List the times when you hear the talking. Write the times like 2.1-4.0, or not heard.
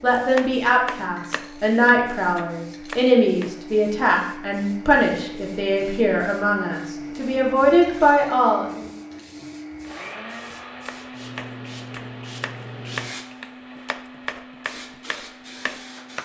0.0-8.8.